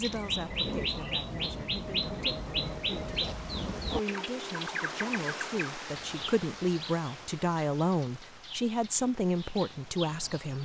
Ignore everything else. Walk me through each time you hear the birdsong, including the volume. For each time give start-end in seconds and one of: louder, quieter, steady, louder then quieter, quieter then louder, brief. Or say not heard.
0.0-10.6 quieter.